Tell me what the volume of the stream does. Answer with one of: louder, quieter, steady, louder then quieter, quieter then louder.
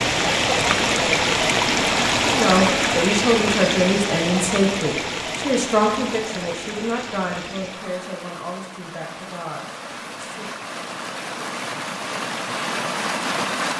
quieter then louder.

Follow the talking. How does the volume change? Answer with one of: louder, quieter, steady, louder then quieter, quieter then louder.
quieter.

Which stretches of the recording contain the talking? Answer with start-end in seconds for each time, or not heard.
2.2-10.6.